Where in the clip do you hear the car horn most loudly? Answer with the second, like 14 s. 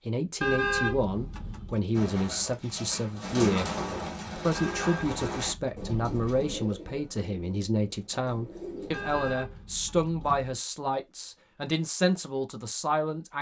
1 s.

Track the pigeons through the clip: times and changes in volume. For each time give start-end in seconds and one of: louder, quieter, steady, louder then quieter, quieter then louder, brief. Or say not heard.
1.9-9.3 quieter.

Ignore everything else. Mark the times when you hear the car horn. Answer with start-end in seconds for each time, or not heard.
0.4-1.9, 4.5-6.5, 8.9-10.6.